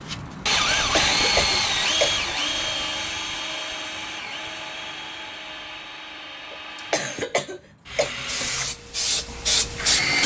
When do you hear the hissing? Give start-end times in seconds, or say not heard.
8.2-10.2.